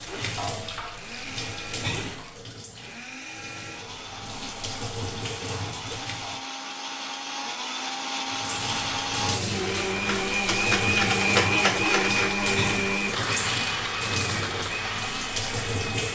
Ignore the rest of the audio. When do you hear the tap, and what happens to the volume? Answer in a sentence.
You can hear the tap from 0.0 to 6.5 s, getting quieter then louder; and from 8.2 to 16.0 s, at a steady volume.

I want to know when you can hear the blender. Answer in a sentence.
You can hear the blender from 0.0 to 16.0 s.